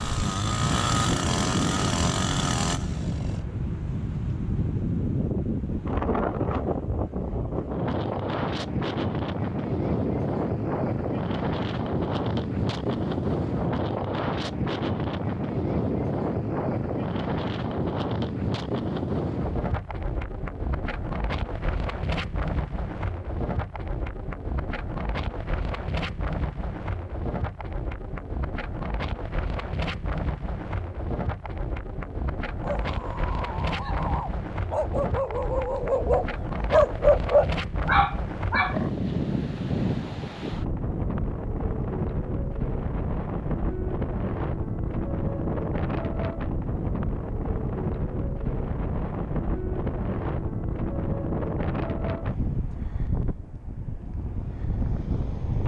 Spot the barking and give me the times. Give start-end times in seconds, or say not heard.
32.6-38.9.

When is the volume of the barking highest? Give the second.
37 s.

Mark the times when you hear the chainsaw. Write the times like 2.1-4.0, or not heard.
0.0-3.5.